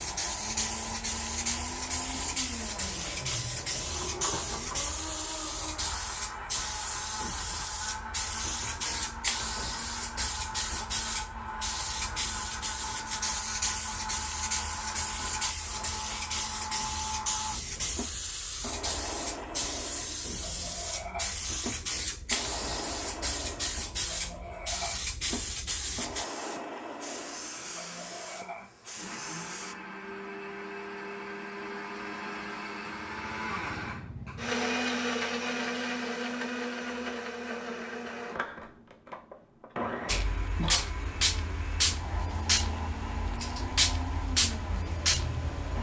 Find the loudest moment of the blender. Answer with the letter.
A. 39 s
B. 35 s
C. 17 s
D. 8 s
B.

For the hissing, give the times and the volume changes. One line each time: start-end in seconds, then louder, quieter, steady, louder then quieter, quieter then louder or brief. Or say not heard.
0.0-29.8 steady
40.0-45.7 steady.